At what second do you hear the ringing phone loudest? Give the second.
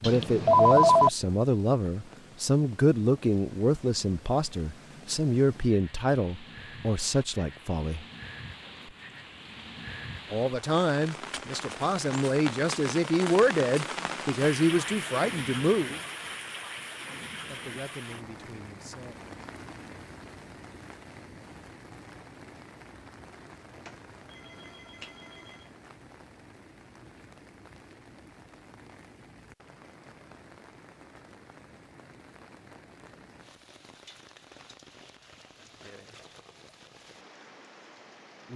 1 s.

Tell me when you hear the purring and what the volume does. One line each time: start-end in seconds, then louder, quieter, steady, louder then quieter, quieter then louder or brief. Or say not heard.
not heard.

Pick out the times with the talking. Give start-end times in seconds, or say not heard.
0.0-8.1, 10.3-16.1, 17.4-19.4.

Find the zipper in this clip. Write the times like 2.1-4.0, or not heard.
not heard.